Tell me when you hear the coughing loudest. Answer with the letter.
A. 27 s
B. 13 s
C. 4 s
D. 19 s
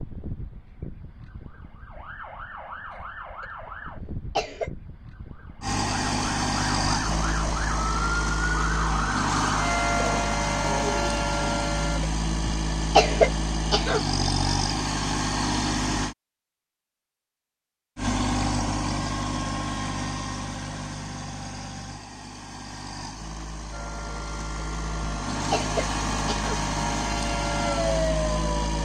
B.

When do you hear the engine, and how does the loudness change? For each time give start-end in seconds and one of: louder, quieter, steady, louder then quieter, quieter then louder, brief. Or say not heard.
5.6-16.1 steady
17.9-28.7 quieter then louder.